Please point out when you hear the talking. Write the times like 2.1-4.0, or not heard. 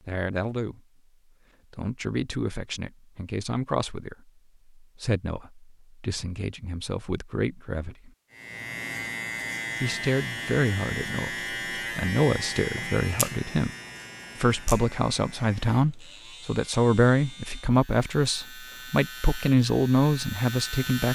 0.1-0.8, 1.7-8.1, 9.8-13.7, 14.3-21.1.